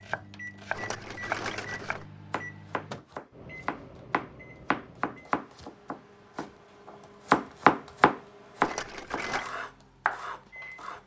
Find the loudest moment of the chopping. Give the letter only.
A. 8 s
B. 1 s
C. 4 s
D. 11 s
A.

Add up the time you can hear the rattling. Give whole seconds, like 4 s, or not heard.
2 s.